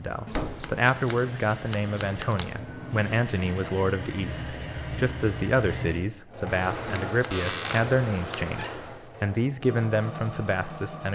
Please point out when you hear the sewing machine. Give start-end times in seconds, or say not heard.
0.0-11.0.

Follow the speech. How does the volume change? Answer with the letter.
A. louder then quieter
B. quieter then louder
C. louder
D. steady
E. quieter
D.